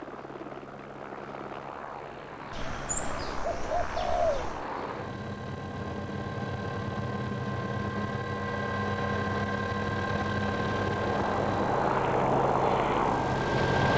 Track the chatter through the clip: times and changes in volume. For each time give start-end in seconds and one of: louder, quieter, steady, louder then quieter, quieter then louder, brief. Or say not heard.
not heard.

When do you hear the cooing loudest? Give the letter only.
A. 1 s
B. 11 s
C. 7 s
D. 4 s
D.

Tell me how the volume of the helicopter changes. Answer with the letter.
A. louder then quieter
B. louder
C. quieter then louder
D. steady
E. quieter
B.